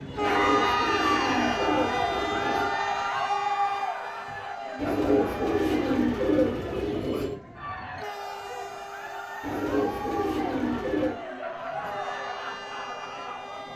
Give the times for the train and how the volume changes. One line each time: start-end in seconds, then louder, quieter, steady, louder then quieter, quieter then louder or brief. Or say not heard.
0.0-13.7 quieter.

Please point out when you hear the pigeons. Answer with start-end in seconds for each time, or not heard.
0.1-2.8, 4.8-7.3, 9.4-11.2.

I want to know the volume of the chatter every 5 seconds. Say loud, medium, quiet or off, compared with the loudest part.
loud, medium, medium.